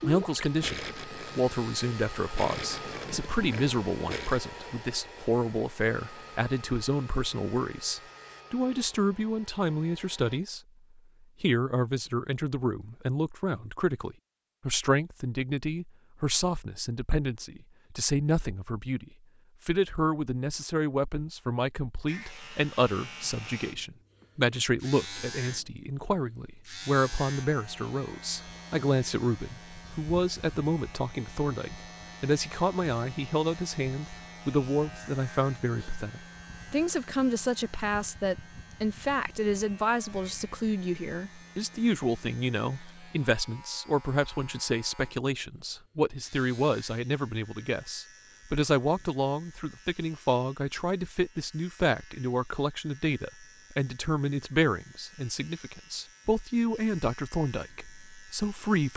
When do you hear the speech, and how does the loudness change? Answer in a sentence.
You can hear the speech from 0.0 to 10.6 s, at a steady volume; and from 11.4 to 58.9 s, at a steady volume.